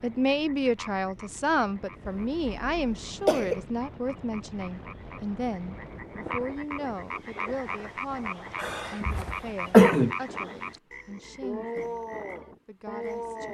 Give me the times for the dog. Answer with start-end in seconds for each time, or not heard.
not heard.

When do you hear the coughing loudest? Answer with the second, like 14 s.
10 s.